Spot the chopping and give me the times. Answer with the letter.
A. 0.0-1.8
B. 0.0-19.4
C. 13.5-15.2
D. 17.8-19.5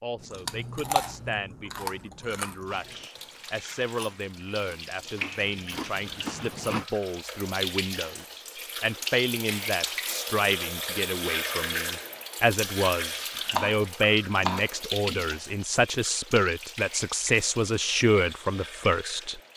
C.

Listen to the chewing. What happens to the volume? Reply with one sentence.
The volume of the chewing goes down, then up.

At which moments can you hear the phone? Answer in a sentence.
The phone can't be heard in this clip.